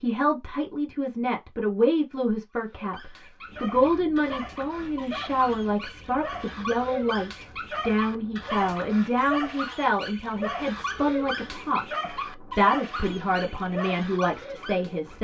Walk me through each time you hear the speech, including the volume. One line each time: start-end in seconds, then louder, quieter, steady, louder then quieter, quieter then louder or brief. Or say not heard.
0.0-15.1 steady.